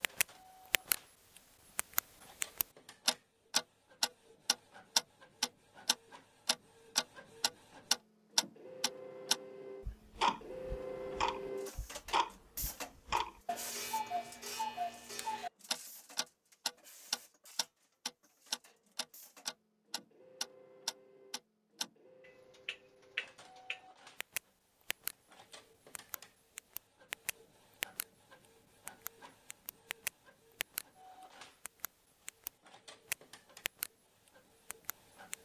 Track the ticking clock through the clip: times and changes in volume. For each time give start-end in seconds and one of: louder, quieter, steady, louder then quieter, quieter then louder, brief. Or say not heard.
0.0-0.9 brief
1.8-25.1 quieter
25.9-28.1 brief
28.9-30.9 brief
31.6-33.9 brief
34.7-35.4 brief.